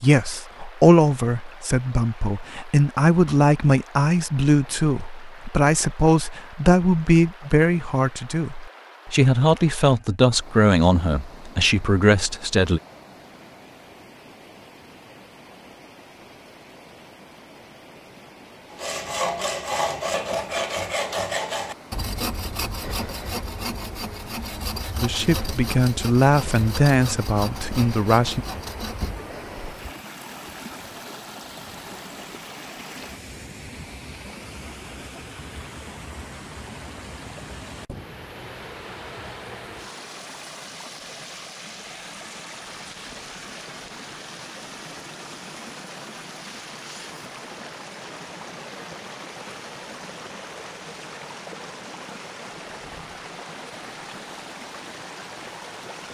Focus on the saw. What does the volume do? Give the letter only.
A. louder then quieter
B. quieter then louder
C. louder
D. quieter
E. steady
D.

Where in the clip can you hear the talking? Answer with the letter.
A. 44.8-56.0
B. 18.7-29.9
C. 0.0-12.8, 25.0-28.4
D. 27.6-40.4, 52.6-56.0
C.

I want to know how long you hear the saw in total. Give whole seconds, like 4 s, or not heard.
11 s.